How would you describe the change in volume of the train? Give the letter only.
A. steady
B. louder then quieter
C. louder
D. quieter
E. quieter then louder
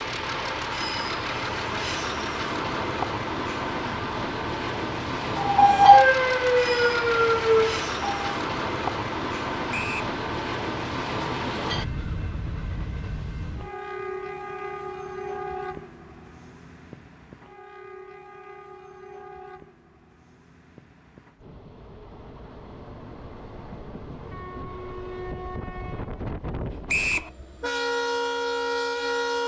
E.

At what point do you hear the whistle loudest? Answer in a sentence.
The loudest moment of the whistle is at 27 seconds.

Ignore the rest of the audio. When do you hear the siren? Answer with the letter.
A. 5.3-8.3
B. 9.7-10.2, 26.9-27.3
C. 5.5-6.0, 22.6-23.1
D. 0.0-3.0
A.